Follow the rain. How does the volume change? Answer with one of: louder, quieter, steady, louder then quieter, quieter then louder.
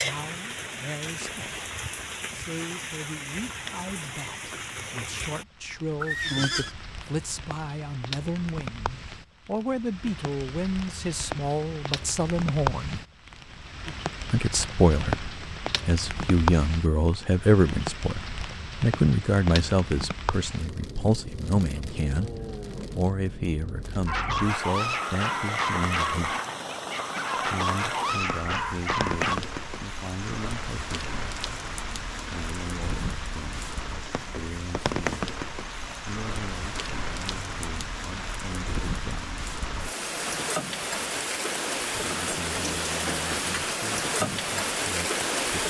louder.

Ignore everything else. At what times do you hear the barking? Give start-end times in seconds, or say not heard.
24.1-29.4.